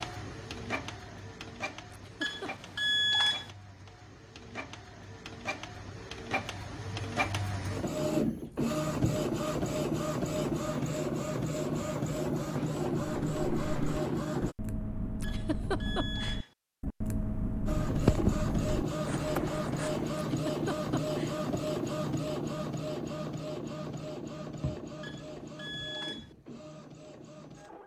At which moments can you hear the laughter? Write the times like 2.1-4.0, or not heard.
1.9-2.5, 15.2-16.4, 20.3-21.4.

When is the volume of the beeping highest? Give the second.
3 s.